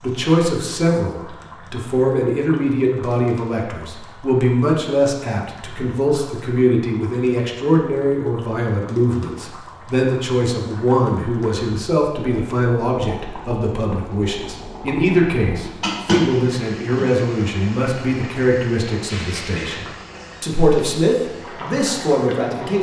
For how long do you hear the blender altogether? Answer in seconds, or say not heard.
not heard.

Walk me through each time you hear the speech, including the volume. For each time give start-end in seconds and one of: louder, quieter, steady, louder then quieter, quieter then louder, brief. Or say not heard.
0.0-22.7 steady.